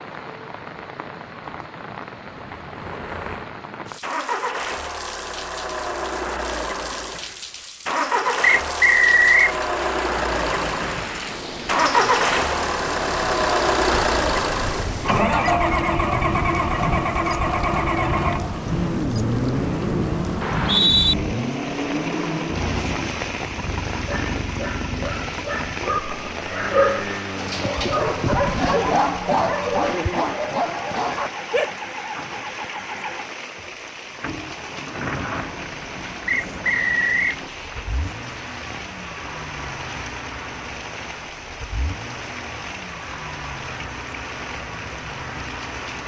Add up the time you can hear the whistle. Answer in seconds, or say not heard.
3 s.